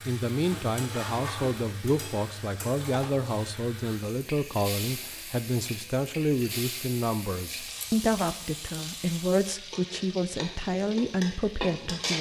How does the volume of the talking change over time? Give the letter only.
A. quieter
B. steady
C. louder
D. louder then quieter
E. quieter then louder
B.